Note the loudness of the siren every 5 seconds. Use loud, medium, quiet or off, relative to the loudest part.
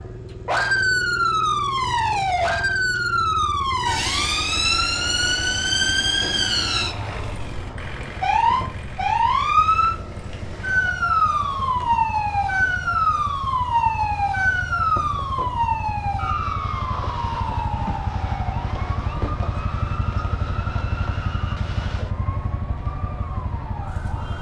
loud, loud, loud, medium, quiet.